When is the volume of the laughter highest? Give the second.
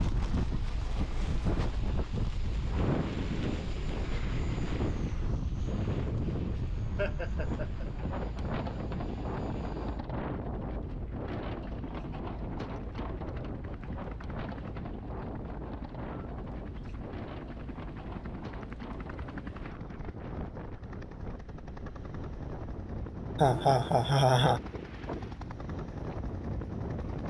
24 s.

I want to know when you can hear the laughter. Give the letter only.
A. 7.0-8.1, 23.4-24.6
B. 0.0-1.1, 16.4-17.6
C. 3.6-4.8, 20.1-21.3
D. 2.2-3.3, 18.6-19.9
A.